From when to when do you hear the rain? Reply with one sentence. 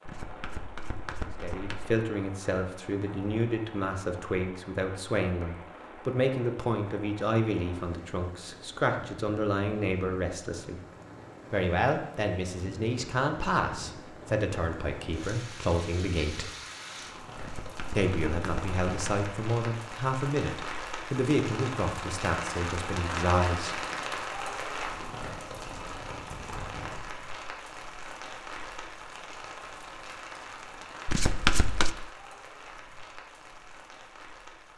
You can hear the rain from 0.0 to 34.7 s.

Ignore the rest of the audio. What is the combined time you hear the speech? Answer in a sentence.
You can hear the speech for 20 seconds altogether.